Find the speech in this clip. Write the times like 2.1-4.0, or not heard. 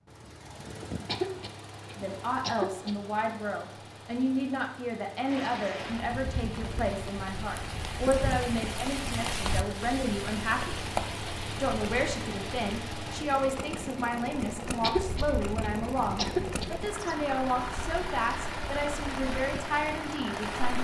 1.9-10.8, 11.6-20.7.